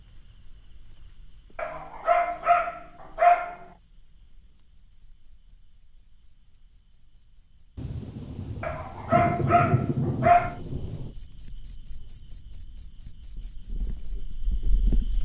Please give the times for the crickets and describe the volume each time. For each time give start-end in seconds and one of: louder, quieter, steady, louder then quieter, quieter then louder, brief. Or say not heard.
0.0-15.2 louder.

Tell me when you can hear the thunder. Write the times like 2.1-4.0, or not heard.
7.8-11.2.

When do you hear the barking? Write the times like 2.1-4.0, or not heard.
1.6-3.5, 8.6-10.6.